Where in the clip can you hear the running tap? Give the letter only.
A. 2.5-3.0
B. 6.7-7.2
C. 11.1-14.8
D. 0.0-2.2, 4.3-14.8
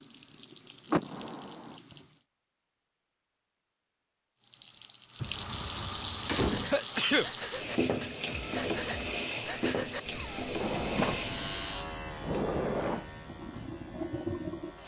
D.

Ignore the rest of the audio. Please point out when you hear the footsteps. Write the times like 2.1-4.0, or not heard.
not heard.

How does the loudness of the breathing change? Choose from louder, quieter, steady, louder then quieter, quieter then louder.
steady.